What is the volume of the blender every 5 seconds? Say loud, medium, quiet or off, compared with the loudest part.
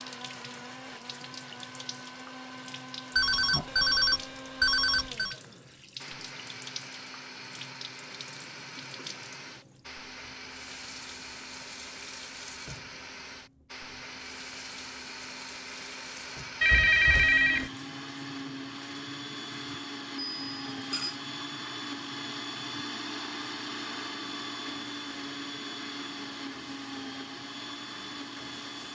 medium, medium, medium, loud, loud, loud.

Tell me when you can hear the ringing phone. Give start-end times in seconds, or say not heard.
3.1-5.3, 16.6-17.7, 20.1-21.2.